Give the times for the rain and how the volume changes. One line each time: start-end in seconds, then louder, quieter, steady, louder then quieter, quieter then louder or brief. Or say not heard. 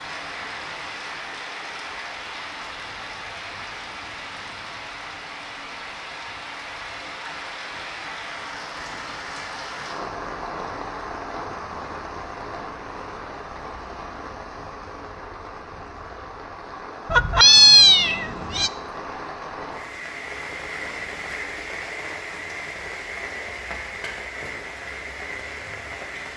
0.0-26.3 steady.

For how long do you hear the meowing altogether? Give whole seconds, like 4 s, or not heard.
2 s.